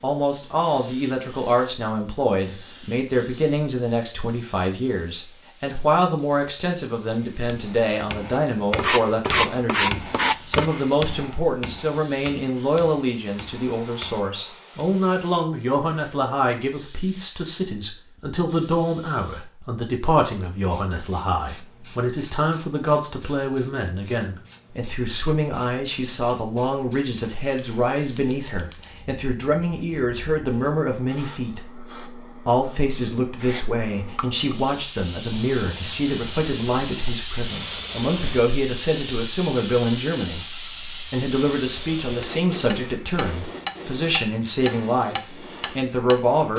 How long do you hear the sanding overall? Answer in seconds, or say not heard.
4 s.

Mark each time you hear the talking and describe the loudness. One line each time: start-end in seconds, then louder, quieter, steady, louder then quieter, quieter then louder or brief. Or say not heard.
0.0-46.5 steady.